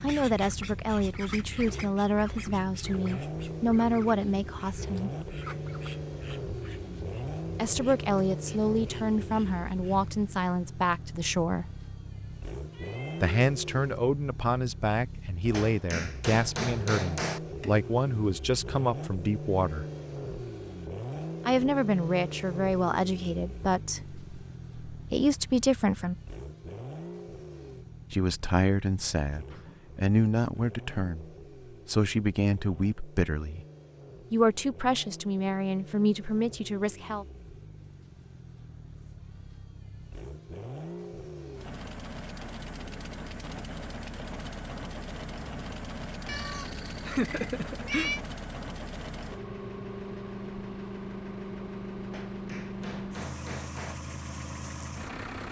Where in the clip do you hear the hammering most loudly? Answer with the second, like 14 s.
17 s.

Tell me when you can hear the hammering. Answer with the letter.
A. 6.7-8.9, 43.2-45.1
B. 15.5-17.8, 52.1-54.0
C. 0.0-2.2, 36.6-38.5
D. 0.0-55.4
B.